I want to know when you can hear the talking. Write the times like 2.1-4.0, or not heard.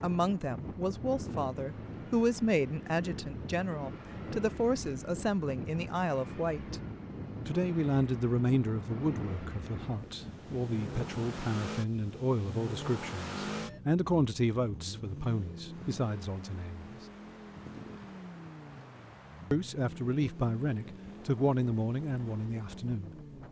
0.0-6.8, 7.5-16.9, 19.5-23.4.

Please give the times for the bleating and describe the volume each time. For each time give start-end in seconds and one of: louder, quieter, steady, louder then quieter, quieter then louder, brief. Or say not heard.
not heard.